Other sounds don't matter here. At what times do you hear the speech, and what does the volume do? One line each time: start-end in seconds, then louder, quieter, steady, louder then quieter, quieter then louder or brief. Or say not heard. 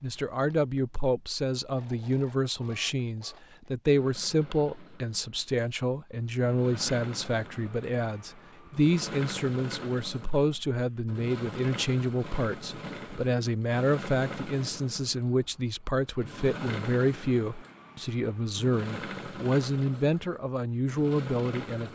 0.0-21.9 steady.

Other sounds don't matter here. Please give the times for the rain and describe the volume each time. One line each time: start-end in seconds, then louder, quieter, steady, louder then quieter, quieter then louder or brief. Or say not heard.
not heard.